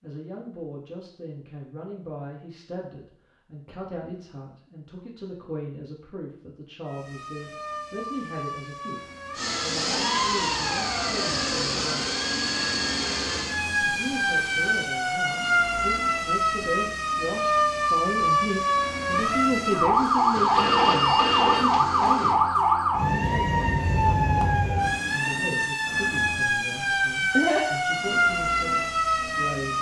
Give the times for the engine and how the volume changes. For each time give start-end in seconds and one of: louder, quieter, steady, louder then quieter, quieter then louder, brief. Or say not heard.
9.3-14.9 quieter
19.9-22.4 brief.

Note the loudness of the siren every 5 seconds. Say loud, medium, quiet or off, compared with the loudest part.
off, quiet, medium, loud, loud, loud.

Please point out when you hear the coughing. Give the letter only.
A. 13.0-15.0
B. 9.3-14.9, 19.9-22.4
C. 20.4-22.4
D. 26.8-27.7
D.